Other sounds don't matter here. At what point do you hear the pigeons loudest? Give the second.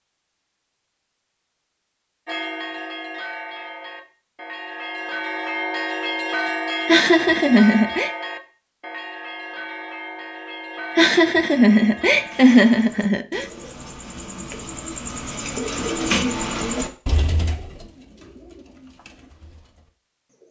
16 s.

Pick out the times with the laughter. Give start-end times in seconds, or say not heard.
6.8-8.1, 10.9-13.4.